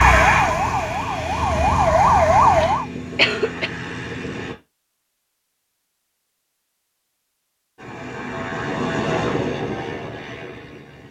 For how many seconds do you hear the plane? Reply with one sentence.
The plane can be heard for 8 seconds in total.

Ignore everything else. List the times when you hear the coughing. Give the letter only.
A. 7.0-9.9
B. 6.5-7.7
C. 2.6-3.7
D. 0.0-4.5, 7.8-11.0
C.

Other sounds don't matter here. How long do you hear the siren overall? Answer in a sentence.
You can hear the siren for 3 seconds altogether.